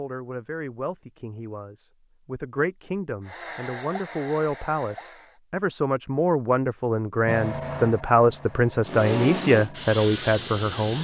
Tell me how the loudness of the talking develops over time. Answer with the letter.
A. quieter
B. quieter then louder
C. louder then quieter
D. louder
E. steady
D.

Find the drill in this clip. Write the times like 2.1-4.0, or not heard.
3.2-5.4, 8.8-11.0.